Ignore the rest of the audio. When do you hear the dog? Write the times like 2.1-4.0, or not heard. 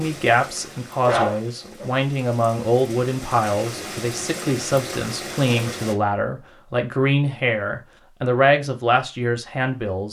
1.1-1.9.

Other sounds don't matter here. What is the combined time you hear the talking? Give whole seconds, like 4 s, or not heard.
10 s.